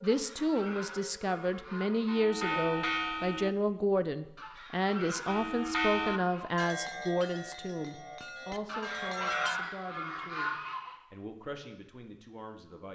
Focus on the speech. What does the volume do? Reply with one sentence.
The volume of the speech goes down.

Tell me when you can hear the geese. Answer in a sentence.
You can hear the geese from 0.0 to 2.3 s, from 4.3 to 6.7 s and from 8.7 to 11.0 s.